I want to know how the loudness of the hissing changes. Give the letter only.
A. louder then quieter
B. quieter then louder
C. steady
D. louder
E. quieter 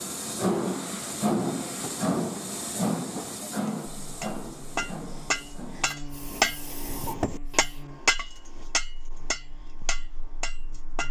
E.